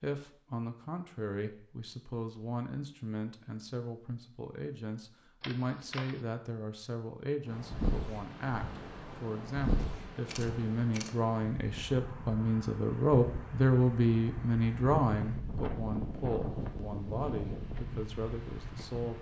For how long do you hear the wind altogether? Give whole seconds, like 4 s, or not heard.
12 s.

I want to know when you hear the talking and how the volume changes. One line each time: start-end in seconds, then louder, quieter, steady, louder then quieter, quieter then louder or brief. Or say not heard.
0.0-19.1 louder then quieter.